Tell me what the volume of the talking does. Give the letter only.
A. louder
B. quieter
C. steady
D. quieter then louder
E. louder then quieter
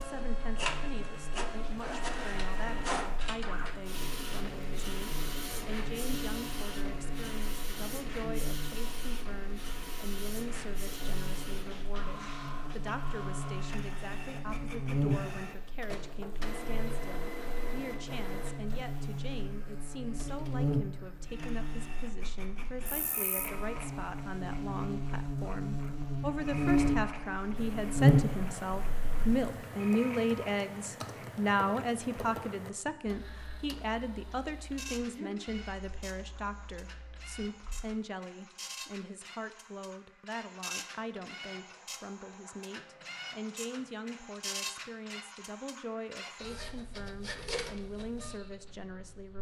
E.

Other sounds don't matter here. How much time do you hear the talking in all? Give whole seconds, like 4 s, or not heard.
49 s.